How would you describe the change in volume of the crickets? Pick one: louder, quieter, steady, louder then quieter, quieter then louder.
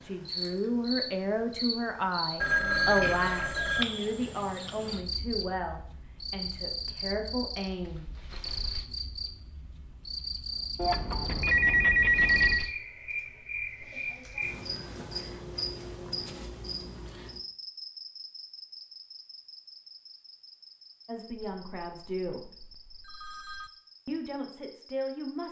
quieter.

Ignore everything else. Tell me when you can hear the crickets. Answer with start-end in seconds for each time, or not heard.
0.0-25.4.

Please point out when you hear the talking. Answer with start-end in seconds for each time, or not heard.
0.0-8.1, 21.1-22.6, 24.1-25.4.